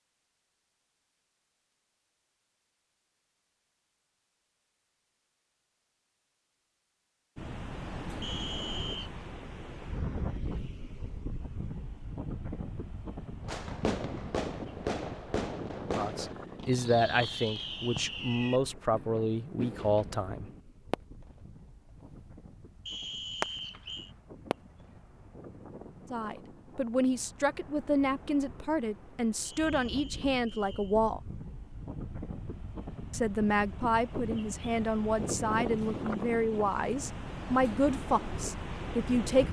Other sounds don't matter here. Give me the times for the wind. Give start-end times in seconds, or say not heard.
7.3-39.4.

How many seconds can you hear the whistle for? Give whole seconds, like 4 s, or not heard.
4 s.